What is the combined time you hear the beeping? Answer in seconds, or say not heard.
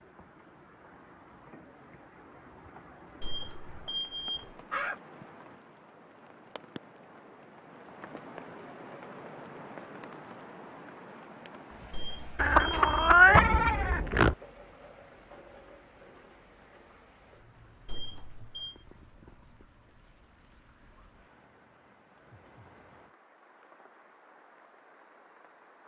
4 s.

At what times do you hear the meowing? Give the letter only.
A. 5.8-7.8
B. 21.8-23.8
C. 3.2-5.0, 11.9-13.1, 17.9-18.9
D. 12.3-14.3
D.